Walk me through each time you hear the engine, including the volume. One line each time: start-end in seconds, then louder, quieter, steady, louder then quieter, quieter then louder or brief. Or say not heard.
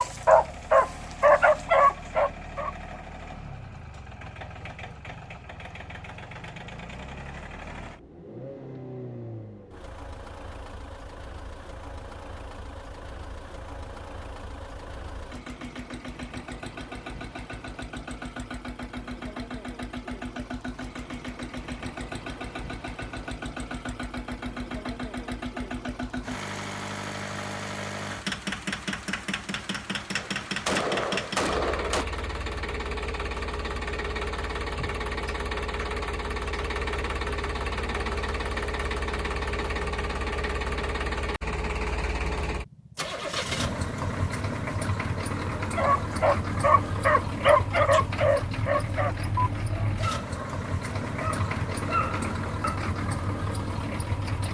0.0-54.4 louder.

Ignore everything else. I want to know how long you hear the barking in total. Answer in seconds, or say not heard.
10 s.